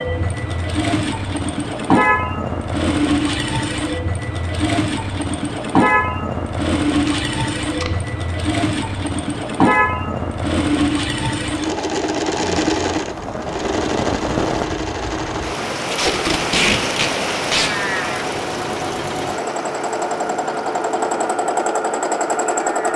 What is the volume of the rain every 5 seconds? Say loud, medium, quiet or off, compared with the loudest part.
medium, medium, loud, loud, medium.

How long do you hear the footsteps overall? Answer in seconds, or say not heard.
not heard.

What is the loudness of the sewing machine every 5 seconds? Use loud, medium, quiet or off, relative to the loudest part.
loud, loud, loud, medium, loud.